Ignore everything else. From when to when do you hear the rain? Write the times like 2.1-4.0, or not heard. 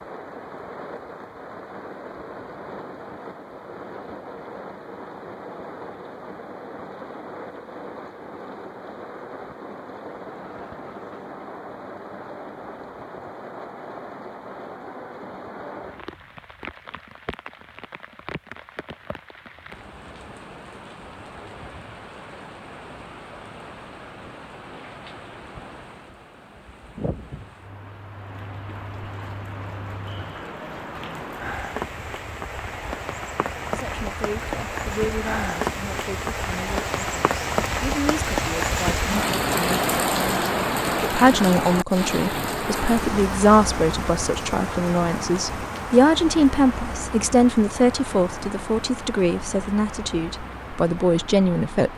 0.0-51.9.